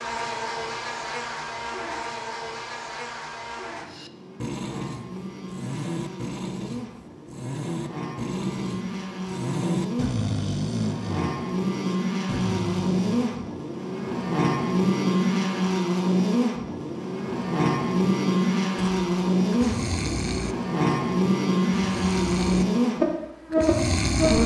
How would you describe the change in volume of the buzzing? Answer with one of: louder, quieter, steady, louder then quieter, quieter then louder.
louder.